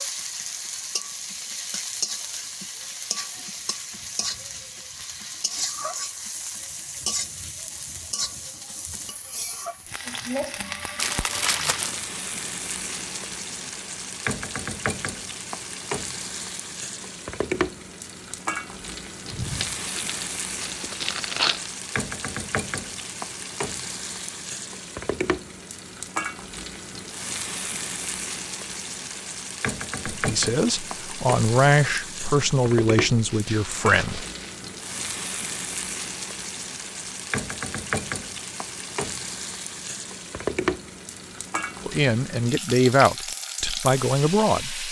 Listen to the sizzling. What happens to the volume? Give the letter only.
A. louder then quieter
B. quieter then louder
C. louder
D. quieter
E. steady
E.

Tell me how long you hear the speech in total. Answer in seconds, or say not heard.
7 s.